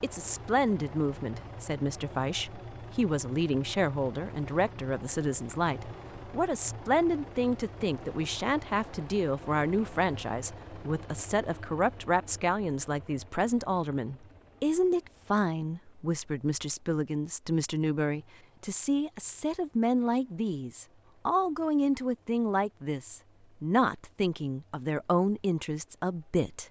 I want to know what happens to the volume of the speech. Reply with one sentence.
The loudness of the speech stays about the same.